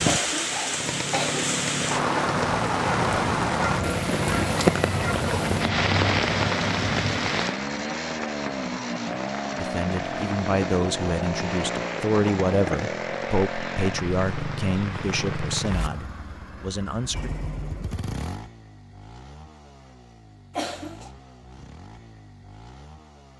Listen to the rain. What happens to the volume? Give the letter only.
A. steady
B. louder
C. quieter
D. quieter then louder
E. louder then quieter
C.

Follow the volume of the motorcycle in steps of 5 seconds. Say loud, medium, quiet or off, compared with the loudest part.
loud, loud, loud, medium, quiet.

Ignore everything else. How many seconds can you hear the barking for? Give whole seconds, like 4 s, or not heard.
5 s.